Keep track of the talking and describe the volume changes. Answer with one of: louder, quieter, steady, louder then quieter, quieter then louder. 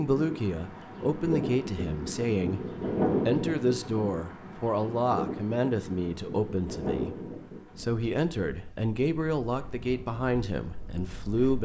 steady.